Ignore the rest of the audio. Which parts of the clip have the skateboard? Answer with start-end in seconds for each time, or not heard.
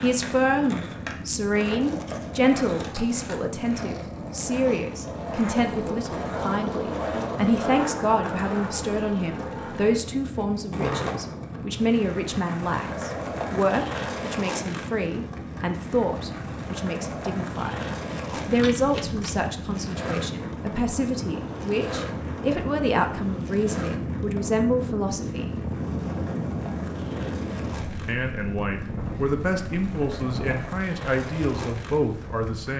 0.0-32.7.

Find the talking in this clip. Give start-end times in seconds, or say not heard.
0.0-17.9, 18.4-25.6, 28.1-32.7.